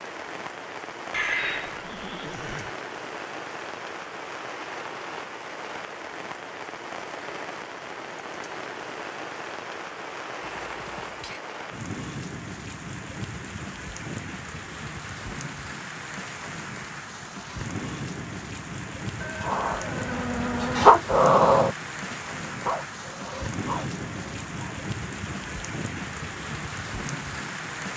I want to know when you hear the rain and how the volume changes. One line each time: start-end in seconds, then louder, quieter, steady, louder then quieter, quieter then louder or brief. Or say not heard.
0.0-27.9 steady.